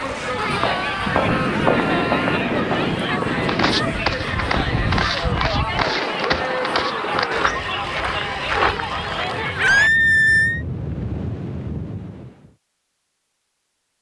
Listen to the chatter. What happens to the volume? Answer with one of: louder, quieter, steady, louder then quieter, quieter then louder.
steady.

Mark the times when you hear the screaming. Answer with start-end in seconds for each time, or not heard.
0.3-2.4, 6.6-7.3, 9.6-10.7.